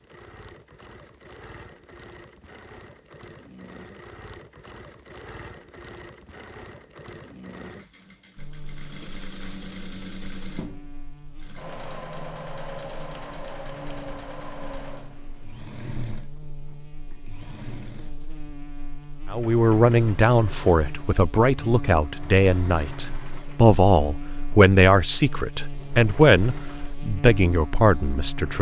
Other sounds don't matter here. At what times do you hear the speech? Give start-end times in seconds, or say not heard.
19.3-28.5.